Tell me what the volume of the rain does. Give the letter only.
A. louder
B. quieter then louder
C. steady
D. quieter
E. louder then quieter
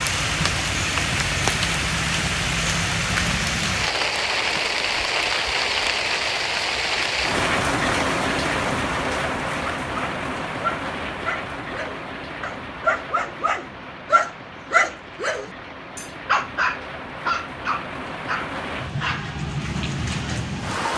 B.